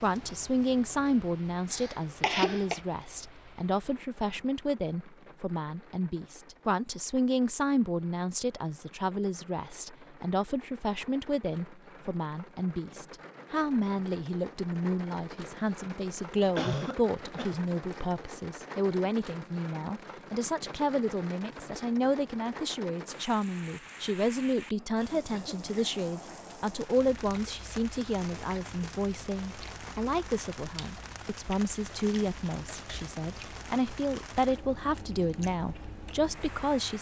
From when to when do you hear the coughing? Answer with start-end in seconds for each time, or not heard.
1.7-2.8, 16.6-17.6, 24.7-26.0.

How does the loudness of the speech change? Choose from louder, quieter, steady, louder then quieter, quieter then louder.
steady.